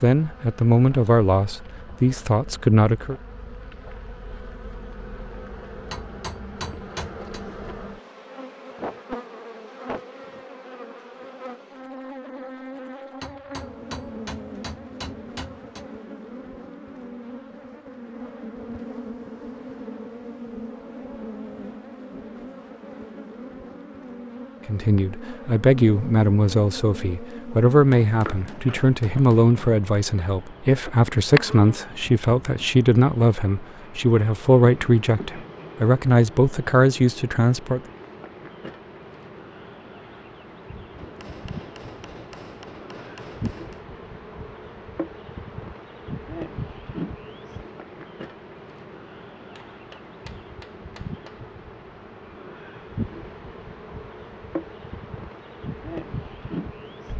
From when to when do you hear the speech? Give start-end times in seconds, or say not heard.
0.0-3.1, 24.6-37.8.